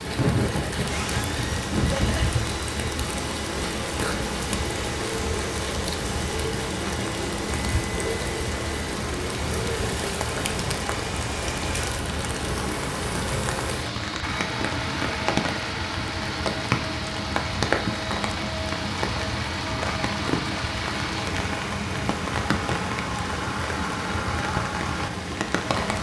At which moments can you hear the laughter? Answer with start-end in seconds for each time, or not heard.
0.1-2.4.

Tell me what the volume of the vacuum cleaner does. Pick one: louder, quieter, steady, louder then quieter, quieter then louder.
steady.